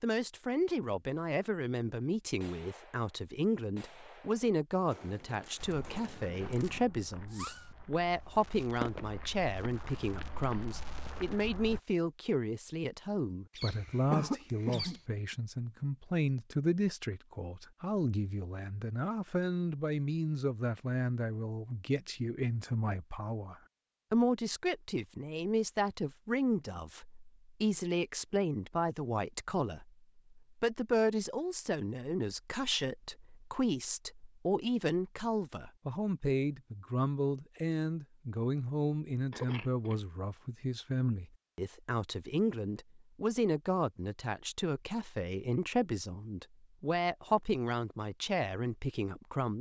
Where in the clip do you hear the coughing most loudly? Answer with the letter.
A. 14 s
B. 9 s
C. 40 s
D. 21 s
A.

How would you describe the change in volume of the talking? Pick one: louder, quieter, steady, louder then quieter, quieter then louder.
steady.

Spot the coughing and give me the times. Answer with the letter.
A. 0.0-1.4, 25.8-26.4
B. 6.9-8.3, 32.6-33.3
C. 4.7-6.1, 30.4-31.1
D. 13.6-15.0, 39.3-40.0
D.